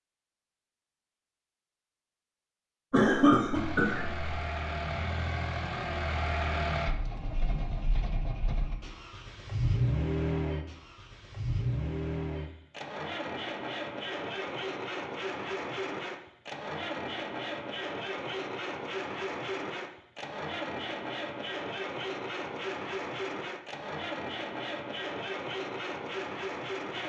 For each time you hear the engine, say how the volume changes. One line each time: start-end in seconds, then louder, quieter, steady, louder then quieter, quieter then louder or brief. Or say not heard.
3.5-27.0 steady.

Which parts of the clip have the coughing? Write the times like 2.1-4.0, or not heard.
2.9-4.2.